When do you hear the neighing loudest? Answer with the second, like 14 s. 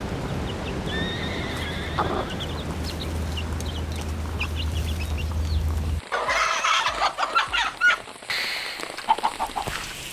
1 s.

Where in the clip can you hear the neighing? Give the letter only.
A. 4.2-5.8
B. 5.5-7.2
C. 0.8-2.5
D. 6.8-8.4
C.